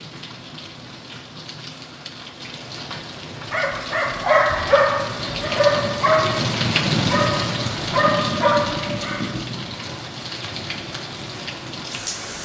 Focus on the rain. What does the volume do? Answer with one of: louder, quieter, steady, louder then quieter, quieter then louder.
louder then quieter.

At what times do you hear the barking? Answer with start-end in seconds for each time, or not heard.
3.5-9.4.